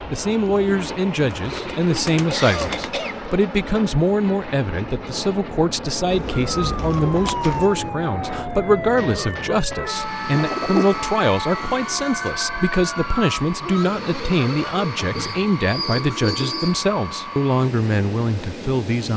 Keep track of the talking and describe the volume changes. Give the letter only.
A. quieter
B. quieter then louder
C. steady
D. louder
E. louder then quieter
C.